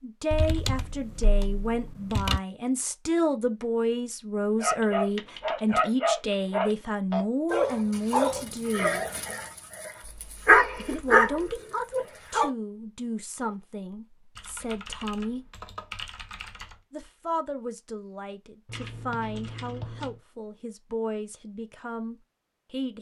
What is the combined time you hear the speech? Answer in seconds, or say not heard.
20 s.